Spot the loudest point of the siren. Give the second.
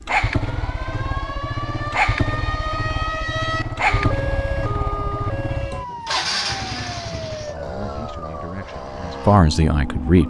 3 s.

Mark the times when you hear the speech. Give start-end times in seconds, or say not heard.
7.1-10.2.